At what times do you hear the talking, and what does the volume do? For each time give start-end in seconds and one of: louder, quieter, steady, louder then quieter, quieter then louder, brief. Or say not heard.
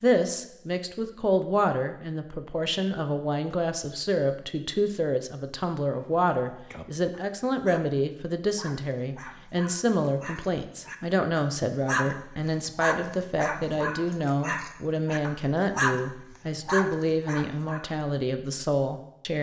0.0-19.3 steady.